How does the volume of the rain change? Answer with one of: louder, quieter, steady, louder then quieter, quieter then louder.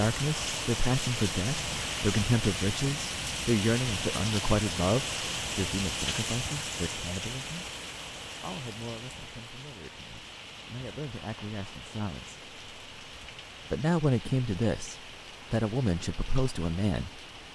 quieter.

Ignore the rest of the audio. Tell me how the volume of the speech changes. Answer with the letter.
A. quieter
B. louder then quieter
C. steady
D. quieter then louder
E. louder
D.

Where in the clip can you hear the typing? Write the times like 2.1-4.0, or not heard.
not heard.